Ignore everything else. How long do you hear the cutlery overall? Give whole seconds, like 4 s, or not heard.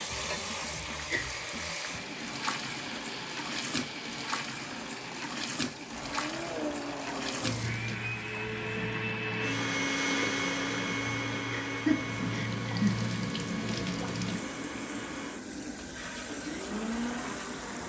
not heard.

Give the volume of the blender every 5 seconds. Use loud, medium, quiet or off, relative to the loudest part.
medium, loud, loud, loud.